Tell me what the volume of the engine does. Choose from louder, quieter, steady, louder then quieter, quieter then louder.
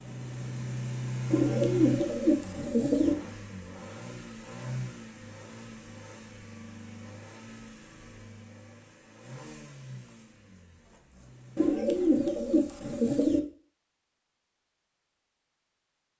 quieter.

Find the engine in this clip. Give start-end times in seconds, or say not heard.
0.0-11.8.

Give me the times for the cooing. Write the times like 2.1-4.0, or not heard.
1.3-3.1, 11.6-13.4.